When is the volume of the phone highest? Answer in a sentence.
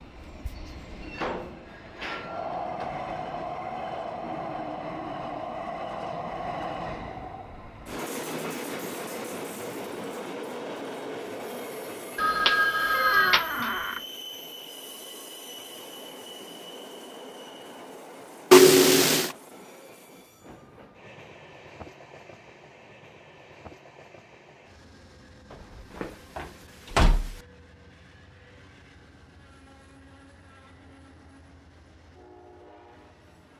The volume of the phone peaks at 19 seconds.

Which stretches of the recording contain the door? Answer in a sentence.
You can hear the door from 1.0 to 3.0 s, from 12.9 to 14.1 s and from 25.5 to 27.4 s.